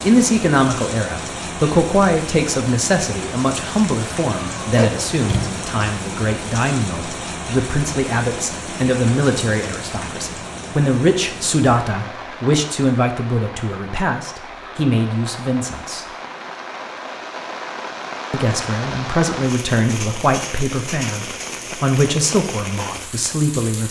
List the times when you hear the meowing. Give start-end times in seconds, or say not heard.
4.4-5.6.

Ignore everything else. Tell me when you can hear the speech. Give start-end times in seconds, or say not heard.
0.0-16.1, 18.3-23.8.